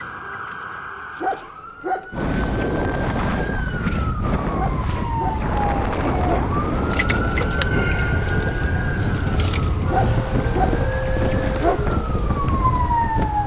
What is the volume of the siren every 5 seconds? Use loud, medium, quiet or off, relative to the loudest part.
medium, loud, loud.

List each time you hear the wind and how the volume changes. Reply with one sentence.
The wind can be heard from 2.1 to 13.4 s, at a steady volume.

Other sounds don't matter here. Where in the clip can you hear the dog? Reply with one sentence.
You can hear the dog from 1.2 to 2.7 s, from 4.5 to 6.5 s and from 9.9 to 11.9 s.